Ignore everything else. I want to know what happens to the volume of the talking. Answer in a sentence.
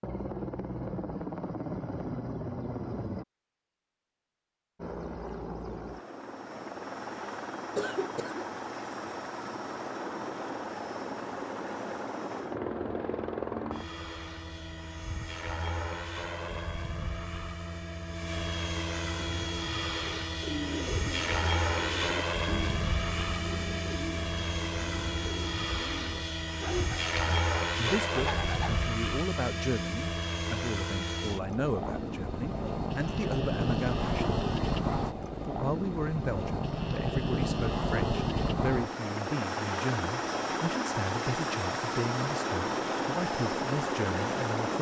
The loudness of the talking stays about the same.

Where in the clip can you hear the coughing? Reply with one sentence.
The coughing can be heard from 7.8 to 8.5 s.